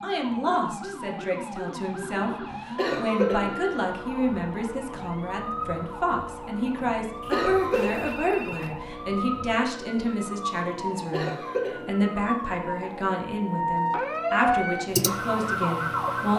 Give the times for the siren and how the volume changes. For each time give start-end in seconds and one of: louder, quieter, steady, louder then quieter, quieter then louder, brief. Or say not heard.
0.0-16.3 louder.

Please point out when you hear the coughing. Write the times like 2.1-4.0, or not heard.
2.8-3.5, 7.3-8.1, 11.1-11.9.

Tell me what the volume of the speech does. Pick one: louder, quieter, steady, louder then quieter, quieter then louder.
steady.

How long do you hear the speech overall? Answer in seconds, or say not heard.
16 s.